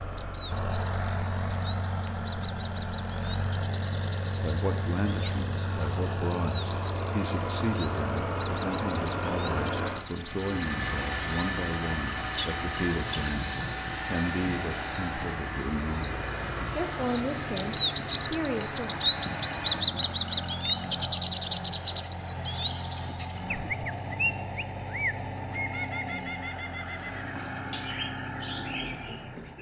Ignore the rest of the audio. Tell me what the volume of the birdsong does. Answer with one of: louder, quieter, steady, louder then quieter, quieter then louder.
louder then quieter.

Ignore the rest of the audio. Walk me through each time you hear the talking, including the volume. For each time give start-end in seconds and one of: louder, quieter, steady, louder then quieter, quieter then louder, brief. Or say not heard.
4.4-18.9 steady.